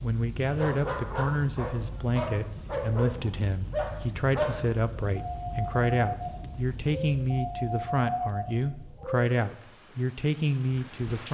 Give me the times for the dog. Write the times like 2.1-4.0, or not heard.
0.5-9.2.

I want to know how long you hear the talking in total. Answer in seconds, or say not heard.
11 s.